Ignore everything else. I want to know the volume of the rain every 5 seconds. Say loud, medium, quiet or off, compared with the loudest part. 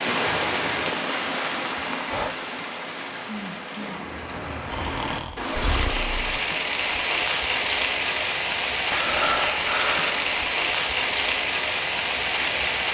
medium, loud, loud.